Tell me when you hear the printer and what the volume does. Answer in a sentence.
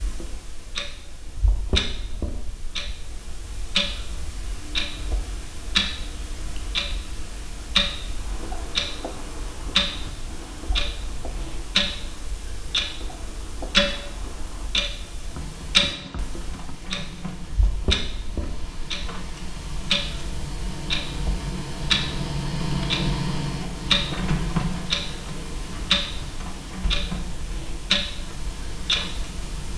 You can hear the printer from 15.2 to 29.7 s, getting louder then quieter.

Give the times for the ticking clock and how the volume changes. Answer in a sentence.
The ticking clock can be heard from 0.0 to 29.7 s, at a steady volume.